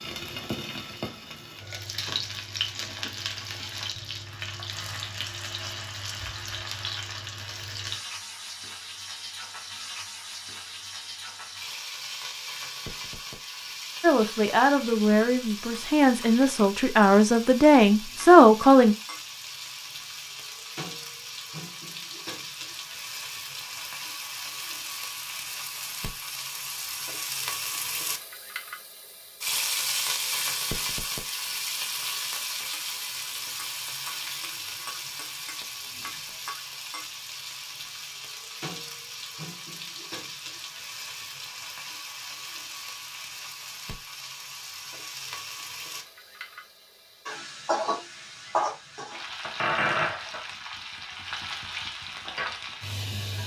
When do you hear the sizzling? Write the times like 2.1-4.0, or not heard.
0.0-53.4.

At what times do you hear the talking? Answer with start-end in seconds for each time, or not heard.
14.0-18.9.